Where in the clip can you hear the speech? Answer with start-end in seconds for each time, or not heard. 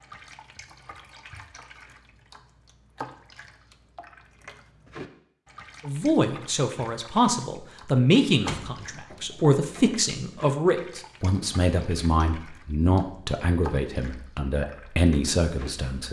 5.8-16.0.